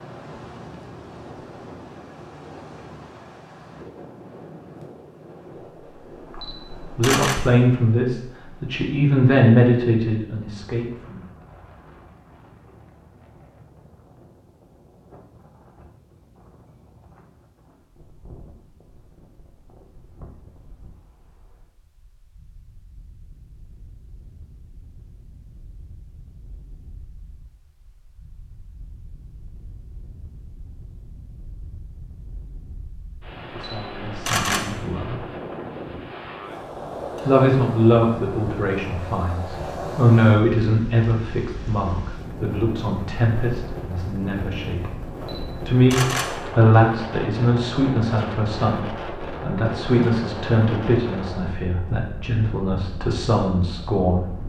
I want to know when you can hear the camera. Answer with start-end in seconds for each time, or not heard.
6.2-7.3, 33.5-34.6, 45.1-46.5.